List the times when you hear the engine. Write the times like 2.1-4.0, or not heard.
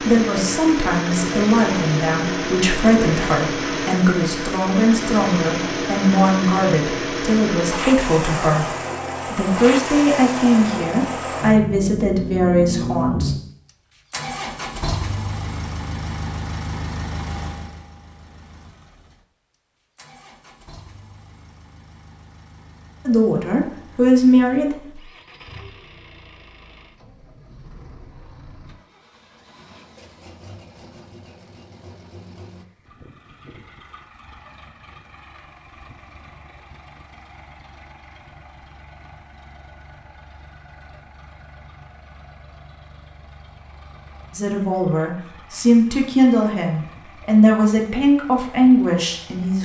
0.0-49.6.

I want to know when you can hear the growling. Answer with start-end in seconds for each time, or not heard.
not heard.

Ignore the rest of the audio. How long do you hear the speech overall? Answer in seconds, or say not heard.
20 s.